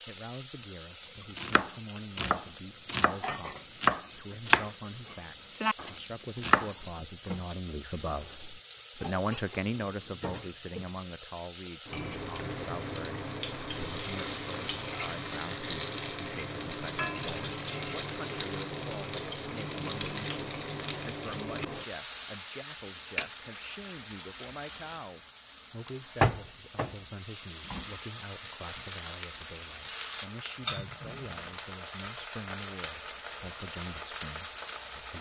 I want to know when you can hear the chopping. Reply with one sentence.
You can hear the chopping from 1.4 to 6.7 s.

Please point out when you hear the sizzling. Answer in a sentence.
You can hear the sizzling from 0.0 to 35.1 s.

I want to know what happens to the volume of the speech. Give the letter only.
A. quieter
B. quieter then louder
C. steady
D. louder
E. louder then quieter
E.